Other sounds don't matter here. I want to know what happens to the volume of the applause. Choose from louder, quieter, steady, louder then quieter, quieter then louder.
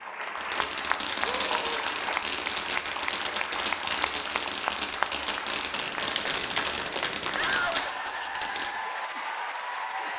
steady.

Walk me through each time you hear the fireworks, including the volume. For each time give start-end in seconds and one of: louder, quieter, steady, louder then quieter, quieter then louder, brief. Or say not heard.
0.3-8.7 steady.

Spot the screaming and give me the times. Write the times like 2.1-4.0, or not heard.
1.2-1.9, 7.3-7.8.